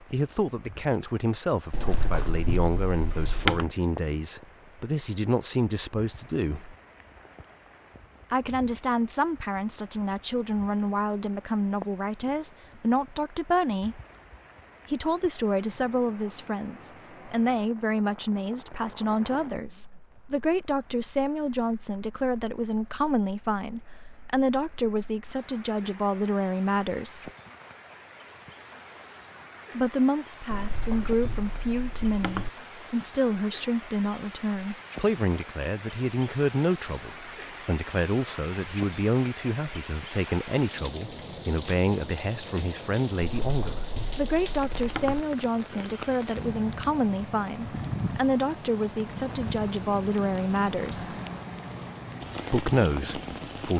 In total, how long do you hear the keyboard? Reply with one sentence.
The keyboard can be heard for 6 seconds in total.